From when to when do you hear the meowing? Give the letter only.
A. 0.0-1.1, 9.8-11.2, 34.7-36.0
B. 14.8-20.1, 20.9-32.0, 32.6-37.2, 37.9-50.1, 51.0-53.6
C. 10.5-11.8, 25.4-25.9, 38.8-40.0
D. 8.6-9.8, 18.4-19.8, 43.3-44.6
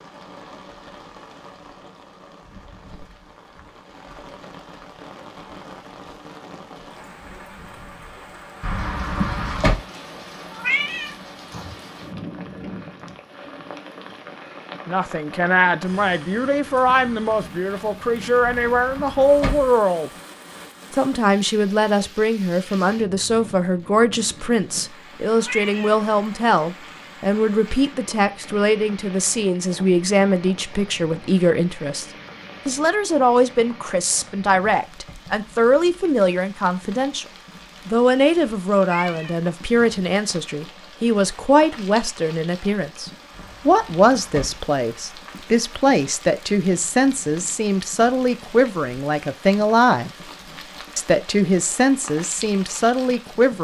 C.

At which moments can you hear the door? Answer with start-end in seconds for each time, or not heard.
8.6-9.8, 18.4-19.8, 43.3-44.6.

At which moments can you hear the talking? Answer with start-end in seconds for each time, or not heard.
14.8-20.1, 20.9-32.0, 32.6-37.2, 37.9-50.1, 51.0-53.6.